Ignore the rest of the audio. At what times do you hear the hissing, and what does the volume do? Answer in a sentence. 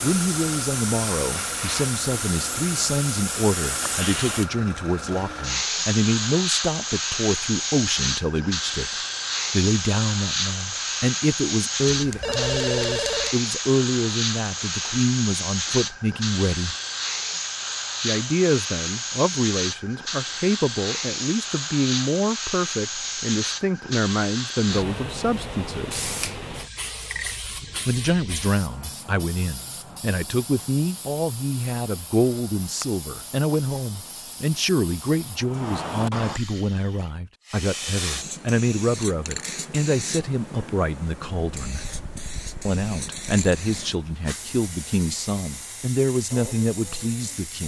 You can hear the hissing from 0.0 to 47.6 s, getting quieter.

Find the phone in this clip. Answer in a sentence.
The phone can be heard from 11.9 to 13.3 s.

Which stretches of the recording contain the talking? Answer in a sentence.
You can hear the talking from 0.0 to 16.8 s, from 18.0 to 26.1 s, from 27.9 to 41.9 s and from 42.6 to 47.6 s.